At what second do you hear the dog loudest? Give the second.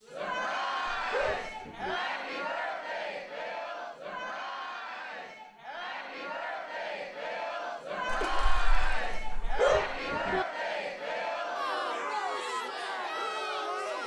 10 s.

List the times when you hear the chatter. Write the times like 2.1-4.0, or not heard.
0.0-14.0.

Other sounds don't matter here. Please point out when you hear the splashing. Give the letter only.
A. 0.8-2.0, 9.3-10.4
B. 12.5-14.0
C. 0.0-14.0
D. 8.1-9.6
D.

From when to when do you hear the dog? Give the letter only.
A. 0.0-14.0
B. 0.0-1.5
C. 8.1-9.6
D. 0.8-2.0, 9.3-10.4
D.